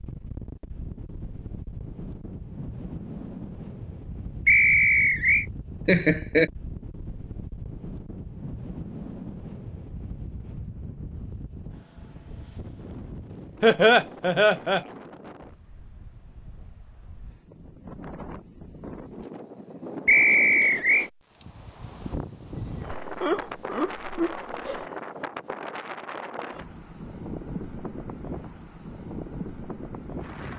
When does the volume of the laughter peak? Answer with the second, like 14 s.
14 s.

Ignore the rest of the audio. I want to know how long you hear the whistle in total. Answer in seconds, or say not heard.
2 s.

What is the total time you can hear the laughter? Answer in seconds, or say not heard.
4 s.